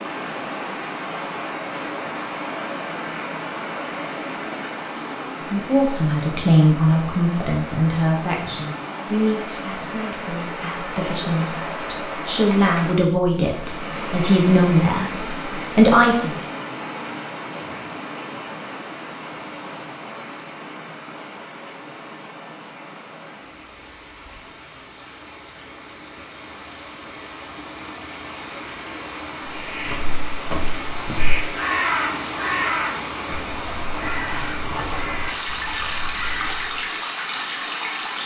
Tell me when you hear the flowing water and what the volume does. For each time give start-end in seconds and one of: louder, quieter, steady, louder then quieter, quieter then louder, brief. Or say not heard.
0.0-38.2 quieter then louder.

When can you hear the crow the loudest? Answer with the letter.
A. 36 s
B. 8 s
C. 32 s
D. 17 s
C.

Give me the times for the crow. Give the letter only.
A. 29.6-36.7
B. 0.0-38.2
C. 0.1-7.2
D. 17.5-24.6
A.